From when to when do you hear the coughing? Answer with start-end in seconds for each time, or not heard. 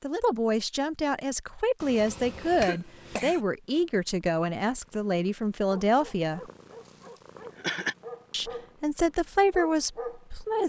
1.8-3.5, 7.2-8.0.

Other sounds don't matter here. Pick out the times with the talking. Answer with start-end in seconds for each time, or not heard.
0.0-6.4, 8.3-10.6.